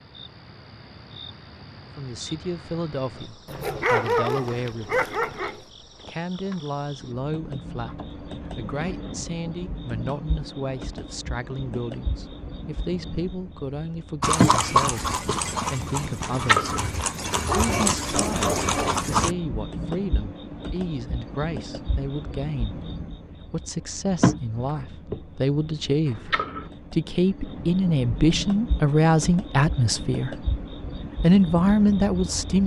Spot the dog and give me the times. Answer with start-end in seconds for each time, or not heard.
3.5-5.6, 17.3-19.1.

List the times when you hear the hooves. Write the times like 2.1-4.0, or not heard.
14.2-19.4.